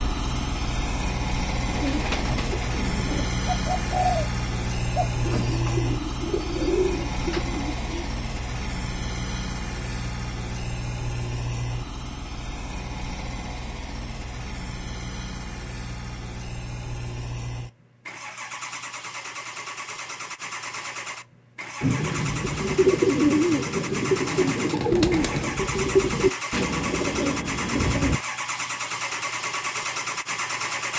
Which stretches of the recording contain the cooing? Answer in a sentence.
You can hear the cooing from 1.6 to 4.2 s, from 5.0 to 8.1 s and from 21.8 to 28.2 s.